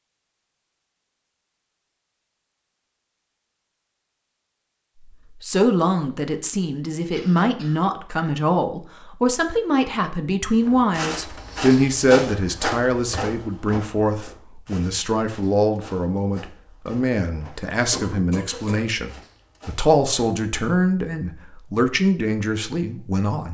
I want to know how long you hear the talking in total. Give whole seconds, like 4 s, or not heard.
18 s.